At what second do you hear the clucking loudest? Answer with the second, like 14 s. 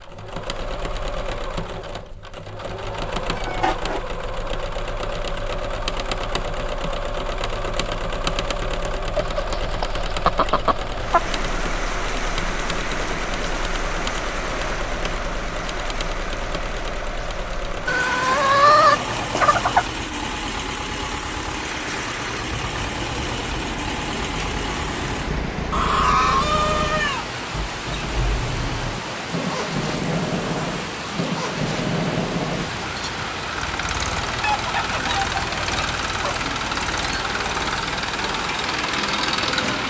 19 s.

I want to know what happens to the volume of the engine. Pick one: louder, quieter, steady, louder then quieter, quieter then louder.
steady.